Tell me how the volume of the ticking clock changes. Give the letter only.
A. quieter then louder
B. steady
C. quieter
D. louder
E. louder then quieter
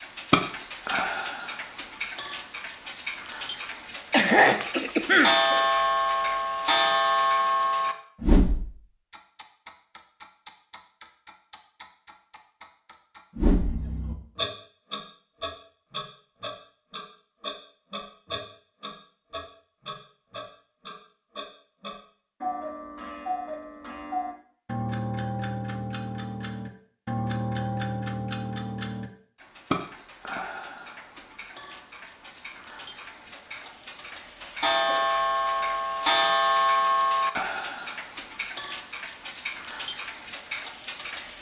A.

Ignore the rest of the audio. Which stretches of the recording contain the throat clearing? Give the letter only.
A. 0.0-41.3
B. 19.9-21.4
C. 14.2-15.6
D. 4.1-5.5
D.